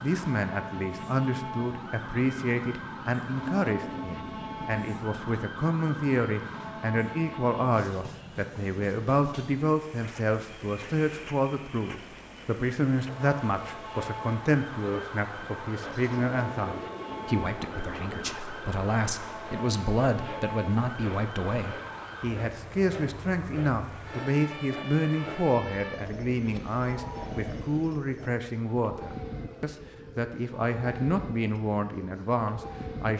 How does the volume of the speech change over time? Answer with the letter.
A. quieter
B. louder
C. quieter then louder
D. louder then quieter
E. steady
E.